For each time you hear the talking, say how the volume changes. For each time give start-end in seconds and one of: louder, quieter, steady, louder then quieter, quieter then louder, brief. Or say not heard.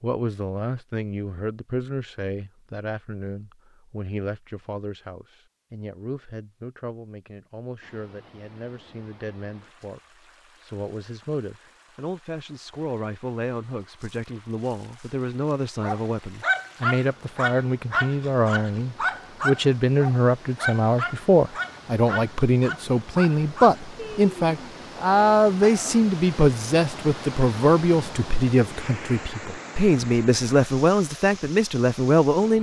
0.0-32.5 louder.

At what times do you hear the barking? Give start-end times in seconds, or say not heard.
15.8-26.0.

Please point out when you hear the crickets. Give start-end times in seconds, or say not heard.
not heard.